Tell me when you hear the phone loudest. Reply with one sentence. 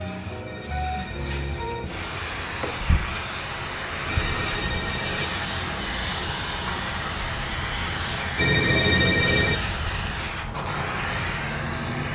The loudest moment of the phone is at 9 seconds.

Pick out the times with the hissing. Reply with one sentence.
The hissing can be heard from 0.0 to 12.0 s.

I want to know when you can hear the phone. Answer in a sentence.
You can hear the phone from 0.5 to 2.5 s, from 4.0 to 5.3 s and from 8.3 to 9.6 s.